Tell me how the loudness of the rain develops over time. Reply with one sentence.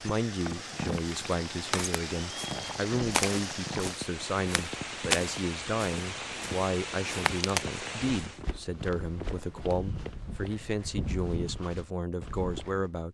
The loudness of the rain stays about the same.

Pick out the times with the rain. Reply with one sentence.
The rain can be heard from 0.0 to 8.4 s.